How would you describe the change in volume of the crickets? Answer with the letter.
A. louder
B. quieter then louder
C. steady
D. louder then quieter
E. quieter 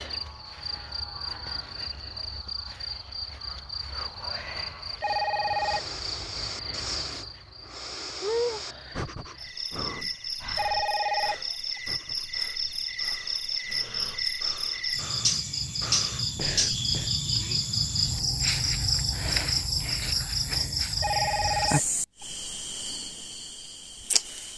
A.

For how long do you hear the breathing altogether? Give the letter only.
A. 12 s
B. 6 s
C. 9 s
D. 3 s
A.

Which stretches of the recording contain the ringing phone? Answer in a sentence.
You can hear the ringing phone from 5.0 to 6.2 s, from 10.6 to 11.8 s and from 21.0 to 22.2 s.